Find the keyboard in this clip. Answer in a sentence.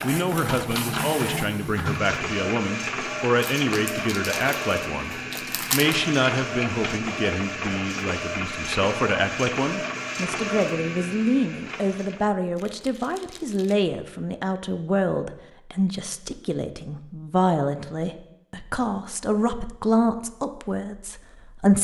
The keyboard can be heard from 0.0 to 2.4 s.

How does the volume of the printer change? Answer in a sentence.
The loudness of the printer stays about the same.